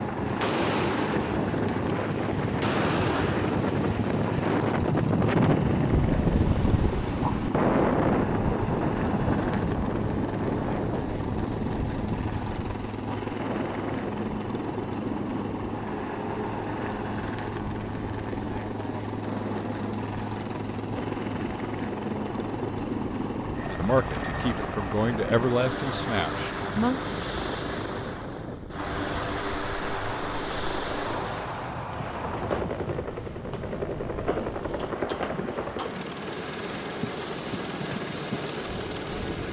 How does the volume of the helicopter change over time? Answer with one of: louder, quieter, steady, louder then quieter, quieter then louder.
steady.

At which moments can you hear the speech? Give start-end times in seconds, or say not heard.
23.6-27.0.